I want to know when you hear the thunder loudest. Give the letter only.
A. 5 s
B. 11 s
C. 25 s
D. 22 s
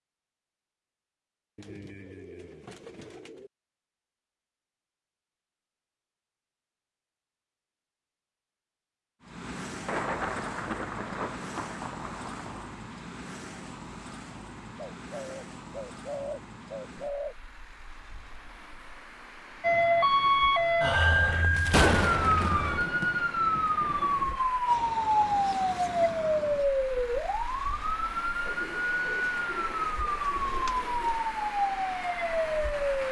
D.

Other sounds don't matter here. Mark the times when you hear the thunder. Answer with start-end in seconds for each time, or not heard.
9.8-12.8, 21.6-24.4.